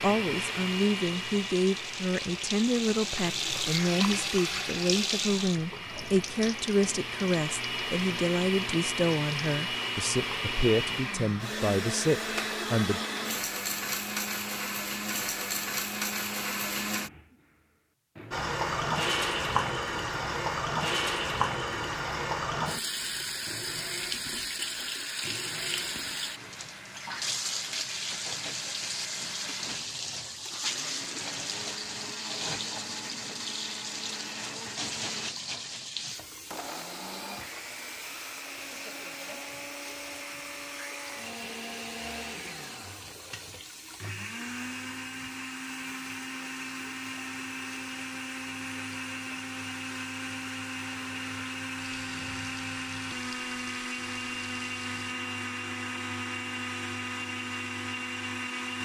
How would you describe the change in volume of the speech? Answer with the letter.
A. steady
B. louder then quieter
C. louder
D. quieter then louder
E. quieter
A.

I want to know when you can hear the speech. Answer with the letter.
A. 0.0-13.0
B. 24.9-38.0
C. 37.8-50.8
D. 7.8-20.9
A.